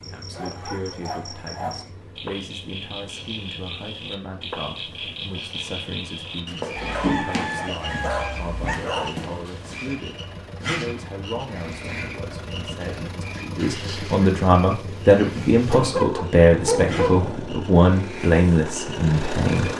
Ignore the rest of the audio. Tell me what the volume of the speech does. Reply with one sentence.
The loudness of the speech goes up.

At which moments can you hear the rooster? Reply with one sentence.
The rooster can be heard from 6.8 to 8.8 s.